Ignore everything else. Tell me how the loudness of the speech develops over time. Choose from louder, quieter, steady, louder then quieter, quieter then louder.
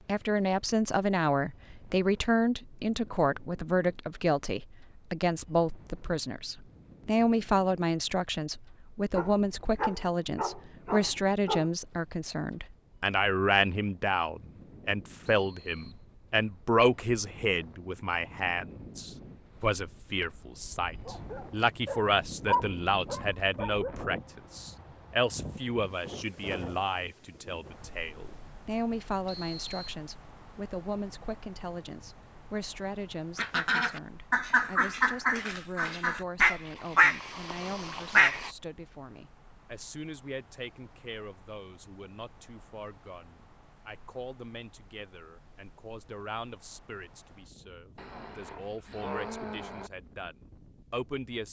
quieter.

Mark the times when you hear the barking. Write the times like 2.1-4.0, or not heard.
9.1-11.7, 21.1-23.9, 48.0-49.9.